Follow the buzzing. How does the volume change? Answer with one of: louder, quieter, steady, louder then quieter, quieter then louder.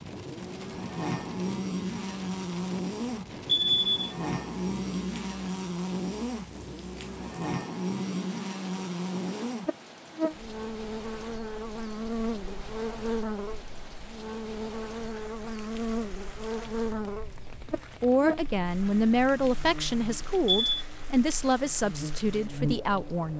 quieter.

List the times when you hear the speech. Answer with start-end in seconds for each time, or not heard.
18.0-23.3.